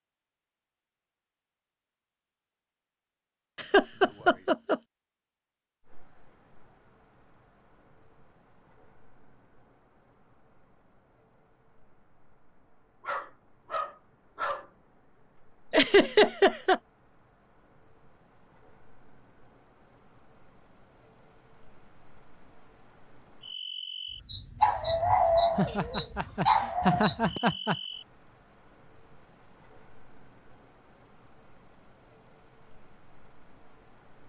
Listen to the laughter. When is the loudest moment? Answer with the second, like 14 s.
16 s.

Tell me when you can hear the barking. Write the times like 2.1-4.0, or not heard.
13.0-14.7, 24.6-27.1.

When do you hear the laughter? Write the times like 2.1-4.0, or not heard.
3.5-4.8, 15.7-16.8, 25.6-27.8.